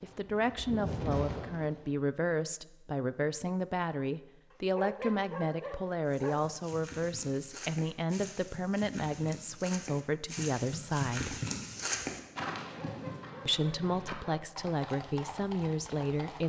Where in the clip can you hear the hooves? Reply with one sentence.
The hooves can be heard from 0.0 to 2.0 s and from 6.0 to 16.4 s.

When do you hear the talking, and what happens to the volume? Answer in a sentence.
You can hear the talking from 0.0 to 11.3 s, at a steady volume; and briefly from 13.4 to 16.4 s.